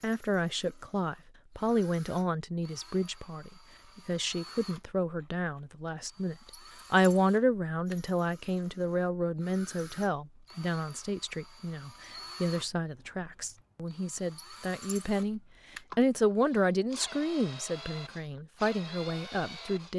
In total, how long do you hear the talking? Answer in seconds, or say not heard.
20 s.